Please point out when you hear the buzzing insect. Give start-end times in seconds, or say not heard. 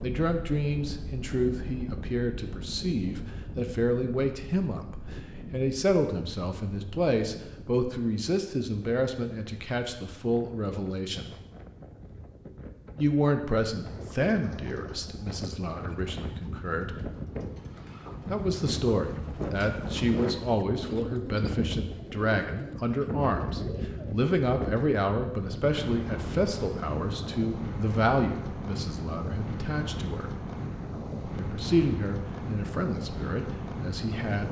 not heard.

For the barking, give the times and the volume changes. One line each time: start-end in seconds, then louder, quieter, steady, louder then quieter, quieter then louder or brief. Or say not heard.
not heard.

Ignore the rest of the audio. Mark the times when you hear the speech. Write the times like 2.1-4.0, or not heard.
0.0-11.3, 12.9-17.0, 18.2-30.4, 31.4-34.4.